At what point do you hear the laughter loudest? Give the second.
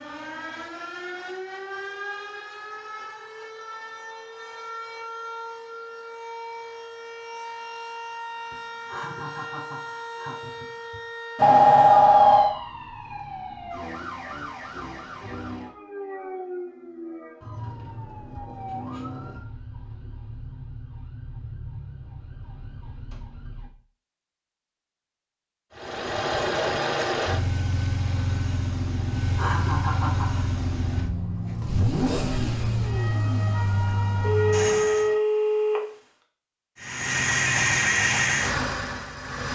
30 s.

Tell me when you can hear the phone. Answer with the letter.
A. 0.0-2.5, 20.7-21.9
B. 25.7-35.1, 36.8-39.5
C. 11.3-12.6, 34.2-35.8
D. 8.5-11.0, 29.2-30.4
C.